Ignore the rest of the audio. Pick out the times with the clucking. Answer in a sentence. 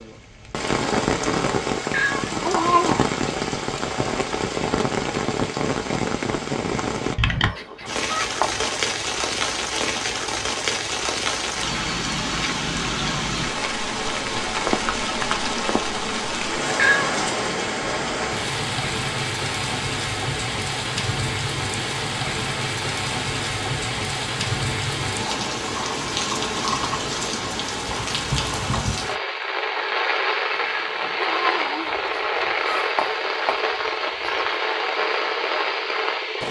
The clucking can be heard from 7.2 to 8.7 s and from 31.9 to 34.6 s.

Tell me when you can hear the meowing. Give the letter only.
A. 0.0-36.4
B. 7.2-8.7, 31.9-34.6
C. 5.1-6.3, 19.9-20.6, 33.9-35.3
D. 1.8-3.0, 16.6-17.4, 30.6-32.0
D.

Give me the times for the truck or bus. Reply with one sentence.
You can't hear the truck or bus here.